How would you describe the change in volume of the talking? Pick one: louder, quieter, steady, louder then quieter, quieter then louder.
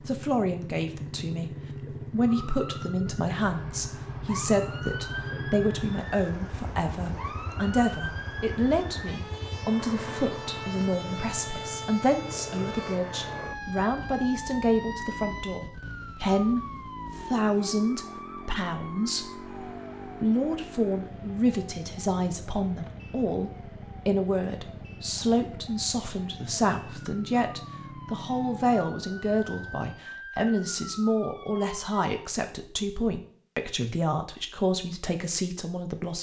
steady.